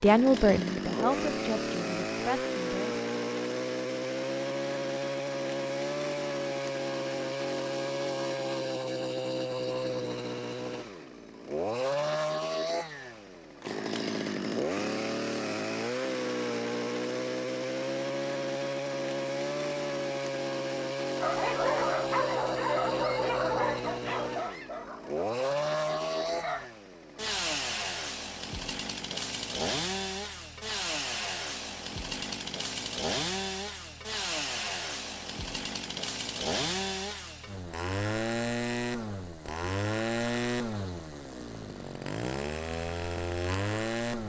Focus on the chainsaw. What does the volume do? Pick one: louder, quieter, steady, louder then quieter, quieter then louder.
steady.